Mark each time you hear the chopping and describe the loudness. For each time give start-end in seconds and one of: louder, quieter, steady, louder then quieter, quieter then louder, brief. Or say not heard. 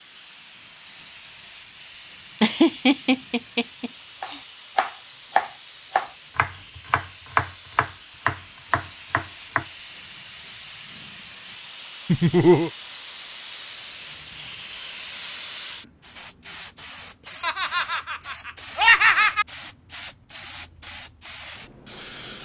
4.2-9.7 quieter.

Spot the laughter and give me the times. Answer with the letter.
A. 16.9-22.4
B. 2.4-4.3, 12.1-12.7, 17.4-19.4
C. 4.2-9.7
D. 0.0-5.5
B.